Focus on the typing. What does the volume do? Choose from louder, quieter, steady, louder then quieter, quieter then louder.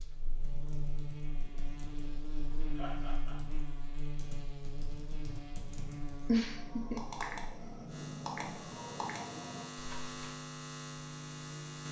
louder.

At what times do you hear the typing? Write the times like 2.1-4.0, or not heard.
0.4-10.2.